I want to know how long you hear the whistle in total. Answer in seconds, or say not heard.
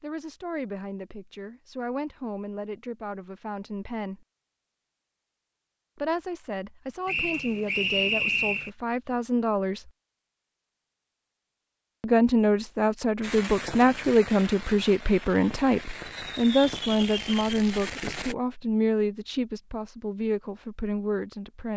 2 s.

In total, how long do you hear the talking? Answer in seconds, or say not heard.
18 s.